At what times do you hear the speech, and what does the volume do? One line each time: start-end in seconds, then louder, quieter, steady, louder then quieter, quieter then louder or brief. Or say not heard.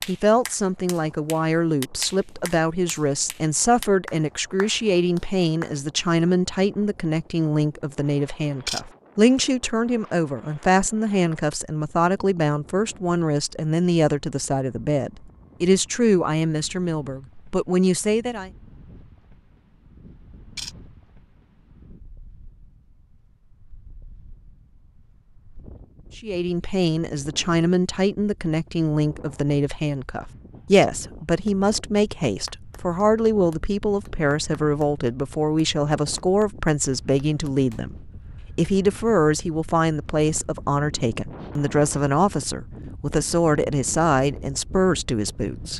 0.1-18.5 steady
26.1-45.7 steady.